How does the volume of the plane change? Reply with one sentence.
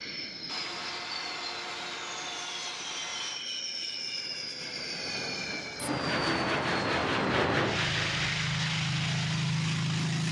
The loudness of the plane goes up.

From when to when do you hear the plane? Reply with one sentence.
The plane can be heard from 0.0 to 10.2 s.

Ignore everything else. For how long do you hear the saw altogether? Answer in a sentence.
The saw can be heard for 5 seconds in total.